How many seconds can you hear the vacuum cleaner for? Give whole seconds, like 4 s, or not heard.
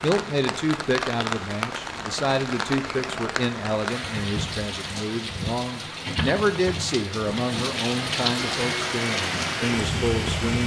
2 s.